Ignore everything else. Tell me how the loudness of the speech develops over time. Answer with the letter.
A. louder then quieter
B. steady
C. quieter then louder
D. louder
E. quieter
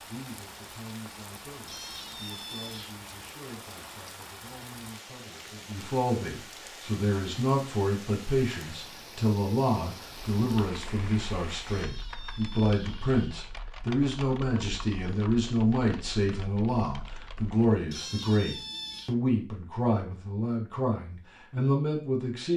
D.